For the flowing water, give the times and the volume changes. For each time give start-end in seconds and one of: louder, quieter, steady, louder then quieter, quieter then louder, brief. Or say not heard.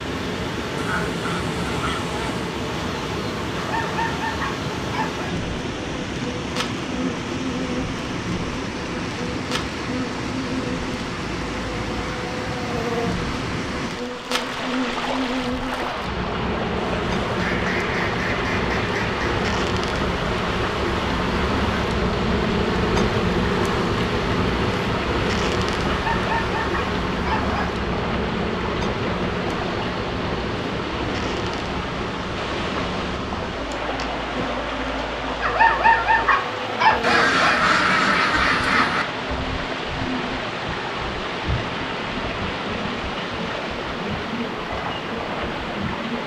0.0-46.2 steady.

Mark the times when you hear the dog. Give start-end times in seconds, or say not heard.
3.5-5.2, 25.9-27.6, 35.4-37.7.